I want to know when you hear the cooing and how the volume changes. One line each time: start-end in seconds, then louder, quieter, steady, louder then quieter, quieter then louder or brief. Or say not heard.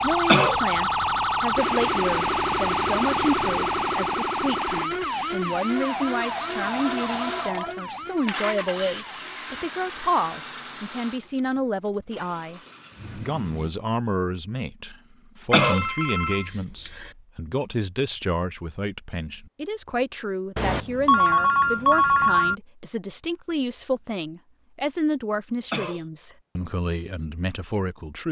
not heard.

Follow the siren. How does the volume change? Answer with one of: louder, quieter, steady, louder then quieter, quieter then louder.
quieter.